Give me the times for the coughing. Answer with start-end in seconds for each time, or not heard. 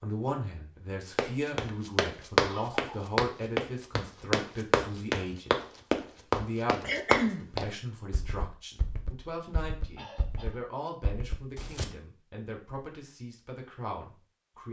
2.4-2.9, 6.8-7.5, 9.9-10.6.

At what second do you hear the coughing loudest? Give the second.
7 s.